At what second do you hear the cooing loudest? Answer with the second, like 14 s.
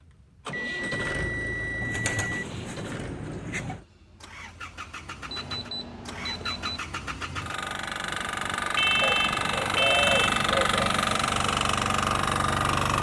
10 s.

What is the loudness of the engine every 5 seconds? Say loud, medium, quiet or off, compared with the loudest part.
quiet, medium, loud.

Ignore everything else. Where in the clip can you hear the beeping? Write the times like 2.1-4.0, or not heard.
0.5-2.5, 5.2-6.8, 8.8-10.4.